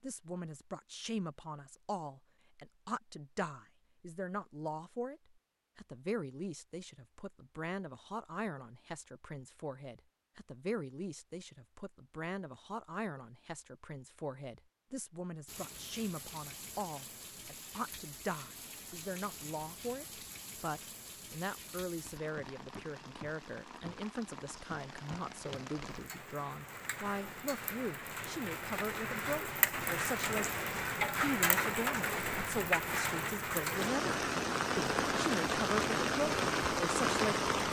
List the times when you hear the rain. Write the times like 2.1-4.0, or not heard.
15.4-37.6.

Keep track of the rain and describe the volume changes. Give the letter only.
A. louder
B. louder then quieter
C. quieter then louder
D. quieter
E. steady
A.